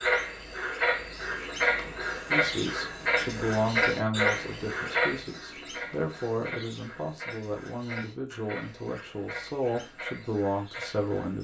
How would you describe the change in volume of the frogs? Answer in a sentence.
The loudness of the frogs goes down.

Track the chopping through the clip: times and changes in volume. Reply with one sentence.
The chopping can't be heard in this clip.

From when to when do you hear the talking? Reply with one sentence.
The talking can be heard from 2.2 to 11.3 s.